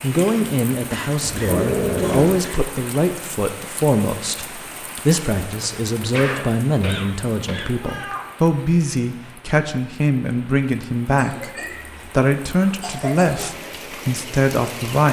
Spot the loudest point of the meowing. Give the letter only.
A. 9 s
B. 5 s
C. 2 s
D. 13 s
C.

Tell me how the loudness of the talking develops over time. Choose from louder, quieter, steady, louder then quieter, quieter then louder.
steady.